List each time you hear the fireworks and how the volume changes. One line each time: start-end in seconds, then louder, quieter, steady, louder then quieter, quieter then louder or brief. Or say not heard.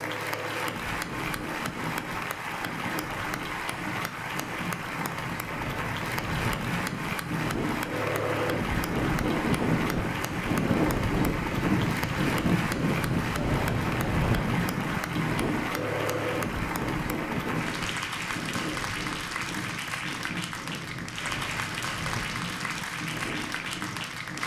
not heard.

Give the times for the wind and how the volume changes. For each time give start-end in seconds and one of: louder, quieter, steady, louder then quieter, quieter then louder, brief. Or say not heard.
0.0-24.4 louder then quieter.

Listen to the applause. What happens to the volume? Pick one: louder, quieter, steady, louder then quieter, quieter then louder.
steady.